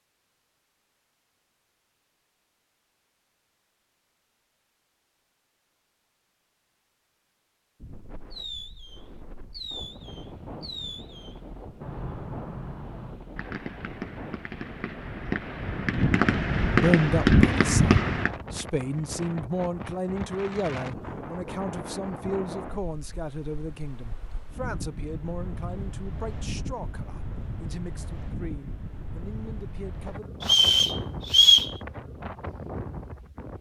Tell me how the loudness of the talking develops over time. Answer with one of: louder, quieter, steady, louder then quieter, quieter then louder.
quieter.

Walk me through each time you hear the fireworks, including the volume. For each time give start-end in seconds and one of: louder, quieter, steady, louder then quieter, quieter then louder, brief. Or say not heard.
8.3-18.3 louder.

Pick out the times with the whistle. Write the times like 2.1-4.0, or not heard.
30.4-31.7.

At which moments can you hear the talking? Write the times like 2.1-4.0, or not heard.
16.7-30.4.